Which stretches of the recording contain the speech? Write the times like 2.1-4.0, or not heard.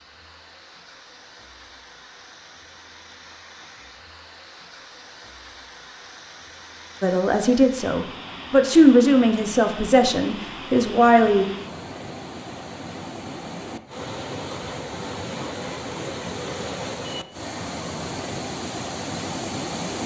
7.0-11.4.